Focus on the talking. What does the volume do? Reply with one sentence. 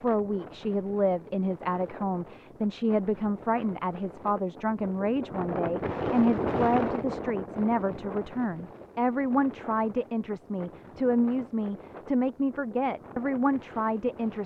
The loudness of the talking stays about the same.